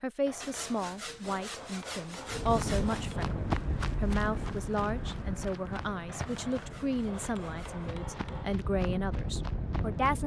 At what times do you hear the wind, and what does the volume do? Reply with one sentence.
The wind can be heard from 2.2 to 10.2 s, getting quieter then louder.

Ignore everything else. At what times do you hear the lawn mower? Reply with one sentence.
You can't hear the lawn mower here.